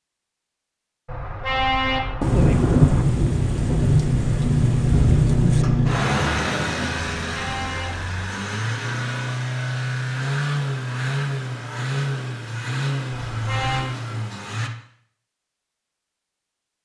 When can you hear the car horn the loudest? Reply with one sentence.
The loudest moment of the car horn is at 2 seconds.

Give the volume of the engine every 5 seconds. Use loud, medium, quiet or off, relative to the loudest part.
loud, loud, loud, off.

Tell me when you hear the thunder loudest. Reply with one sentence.
The volume of the thunder peaks at 3 seconds.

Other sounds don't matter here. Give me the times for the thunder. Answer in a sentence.
You can hear the thunder from 2.2 to 5.7 s.